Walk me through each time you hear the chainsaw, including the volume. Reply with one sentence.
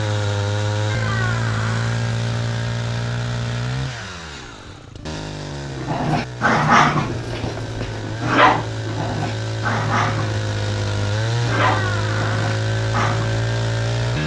You can hear the chainsaw from 0.0 to 14.2 s, getting quieter then louder.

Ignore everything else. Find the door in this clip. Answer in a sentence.
You can hear the door from 0.8 to 2.0 s and from 11.6 to 12.6 s.